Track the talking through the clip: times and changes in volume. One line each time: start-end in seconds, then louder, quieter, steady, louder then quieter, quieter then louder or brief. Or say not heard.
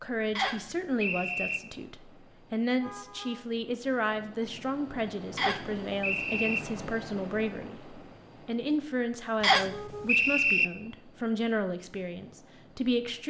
0.0-13.2 steady.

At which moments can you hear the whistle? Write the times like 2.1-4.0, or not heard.
0.3-1.6, 5.3-6.6, 9.4-10.7.